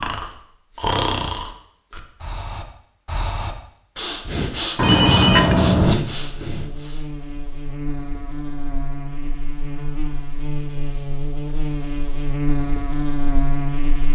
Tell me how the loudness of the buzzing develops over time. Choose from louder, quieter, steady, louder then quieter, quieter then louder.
louder.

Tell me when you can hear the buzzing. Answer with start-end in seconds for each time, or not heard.
6.0-14.1.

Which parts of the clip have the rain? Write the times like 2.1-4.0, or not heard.
not heard.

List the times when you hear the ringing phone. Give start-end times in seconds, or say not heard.
4.8-6.0.